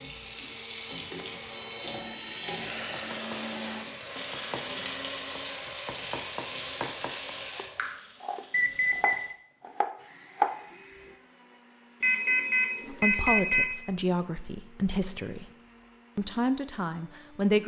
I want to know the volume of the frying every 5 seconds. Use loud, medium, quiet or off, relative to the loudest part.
loud, loud, off, off.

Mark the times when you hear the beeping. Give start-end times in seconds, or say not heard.
0.8-2.7, 8.5-9.3, 12.0-13.7.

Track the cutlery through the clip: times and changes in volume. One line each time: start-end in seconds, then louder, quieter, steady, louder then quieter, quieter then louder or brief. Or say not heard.
not heard.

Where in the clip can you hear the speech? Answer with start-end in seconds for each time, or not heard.
12.9-15.4, 16.1-17.6.